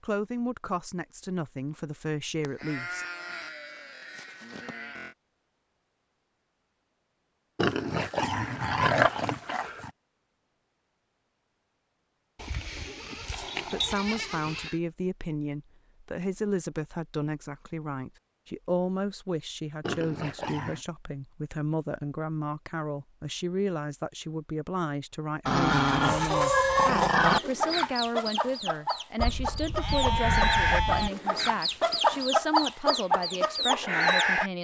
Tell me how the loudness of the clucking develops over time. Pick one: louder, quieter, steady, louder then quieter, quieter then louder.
quieter then louder.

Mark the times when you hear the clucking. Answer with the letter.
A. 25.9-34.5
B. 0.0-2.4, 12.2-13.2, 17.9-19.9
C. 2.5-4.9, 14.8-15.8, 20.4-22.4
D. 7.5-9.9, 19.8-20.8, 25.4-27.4
A.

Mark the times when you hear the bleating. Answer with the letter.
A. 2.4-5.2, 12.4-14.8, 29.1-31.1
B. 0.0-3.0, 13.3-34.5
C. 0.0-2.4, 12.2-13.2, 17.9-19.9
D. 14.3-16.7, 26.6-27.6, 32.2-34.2
A.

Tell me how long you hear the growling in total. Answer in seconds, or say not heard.
5 s.